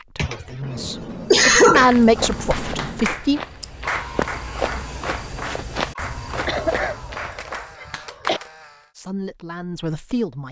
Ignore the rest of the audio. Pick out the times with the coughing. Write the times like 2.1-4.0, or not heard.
0.1-1.9, 6.5-8.4.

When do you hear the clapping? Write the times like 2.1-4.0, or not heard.
2.4-8.4.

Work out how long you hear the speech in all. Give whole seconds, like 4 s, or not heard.
5 s.